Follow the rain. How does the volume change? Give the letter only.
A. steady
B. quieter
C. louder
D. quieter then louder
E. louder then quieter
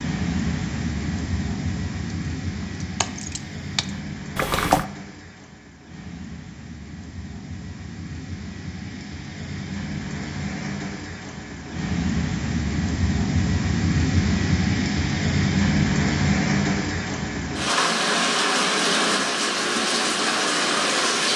D.